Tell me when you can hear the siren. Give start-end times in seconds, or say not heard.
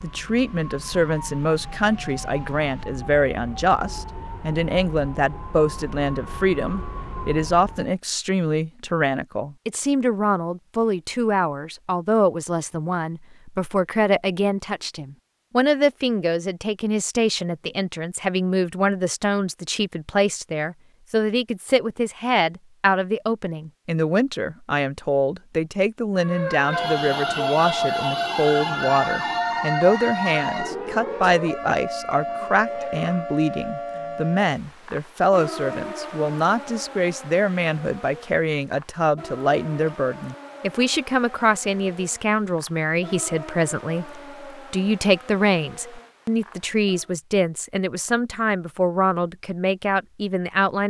0.0-8.0, 26.1-47.1.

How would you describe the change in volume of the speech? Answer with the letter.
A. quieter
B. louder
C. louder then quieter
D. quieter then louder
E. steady
E.